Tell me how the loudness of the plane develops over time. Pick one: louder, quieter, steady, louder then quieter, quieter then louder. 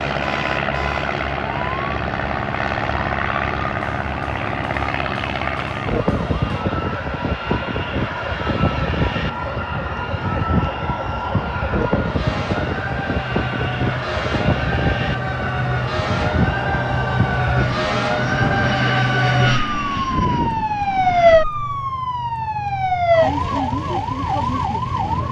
quieter.